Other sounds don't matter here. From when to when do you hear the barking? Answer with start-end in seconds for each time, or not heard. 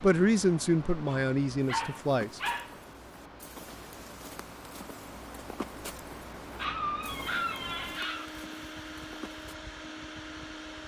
1.1-2.8, 6.5-8.3.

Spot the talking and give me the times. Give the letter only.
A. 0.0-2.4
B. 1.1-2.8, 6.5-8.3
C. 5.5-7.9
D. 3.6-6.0
A.